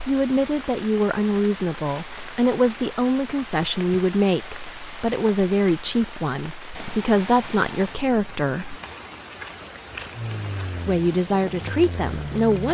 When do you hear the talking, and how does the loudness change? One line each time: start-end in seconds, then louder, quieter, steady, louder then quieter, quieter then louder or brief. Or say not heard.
0.1-8.8 steady
10.8-12.6 brief.